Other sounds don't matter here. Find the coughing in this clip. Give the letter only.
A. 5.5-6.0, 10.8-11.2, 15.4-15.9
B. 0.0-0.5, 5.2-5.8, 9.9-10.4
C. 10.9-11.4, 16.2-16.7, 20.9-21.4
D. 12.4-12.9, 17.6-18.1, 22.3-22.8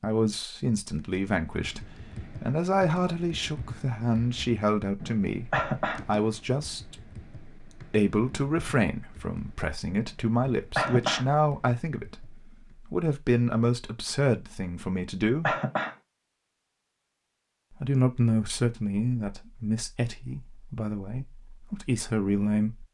A.